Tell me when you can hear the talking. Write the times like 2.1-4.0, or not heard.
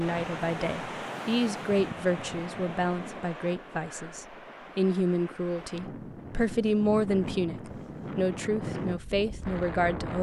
0.0-10.1.